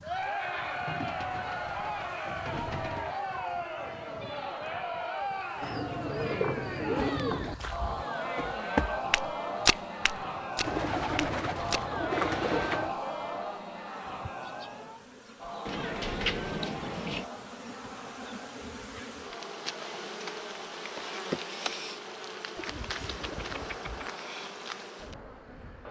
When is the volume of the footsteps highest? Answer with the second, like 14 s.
10 s.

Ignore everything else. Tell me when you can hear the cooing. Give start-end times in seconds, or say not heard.
0.8-3.2, 5.6-7.5, 10.6-12.9, 15.7-17.2, 22.6-24.1.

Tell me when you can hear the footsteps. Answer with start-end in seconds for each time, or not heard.
7.0-12.8.